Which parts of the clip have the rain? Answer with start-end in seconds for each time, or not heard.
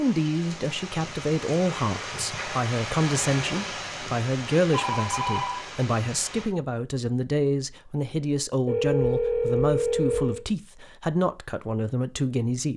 0.0-6.5.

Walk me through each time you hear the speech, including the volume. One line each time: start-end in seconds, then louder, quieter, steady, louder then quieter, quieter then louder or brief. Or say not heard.
0.0-12.7 steady.